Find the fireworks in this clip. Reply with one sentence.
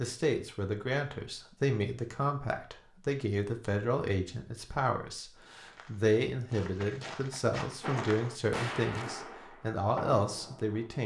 You can hear the fireworks from 7.8 to 11.0 s.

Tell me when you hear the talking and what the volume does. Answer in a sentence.
The talking can be heard from 0.0 to 11.0 s, at a steady volume.